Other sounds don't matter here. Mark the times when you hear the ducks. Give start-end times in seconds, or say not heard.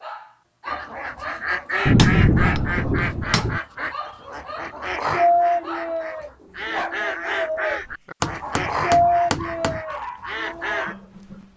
0.7-10.9.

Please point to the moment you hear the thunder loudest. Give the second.
2 s.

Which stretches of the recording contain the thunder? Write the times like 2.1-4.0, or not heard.
1.9-3.6.